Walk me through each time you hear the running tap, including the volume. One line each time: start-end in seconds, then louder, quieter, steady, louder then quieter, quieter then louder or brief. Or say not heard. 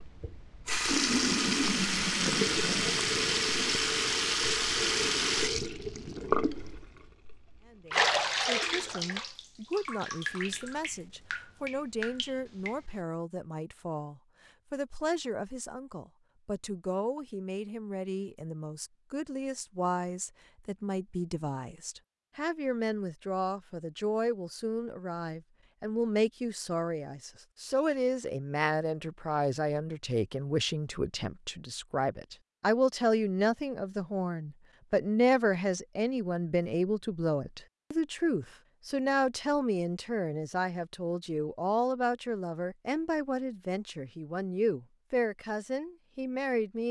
0.0-13.0 quieter.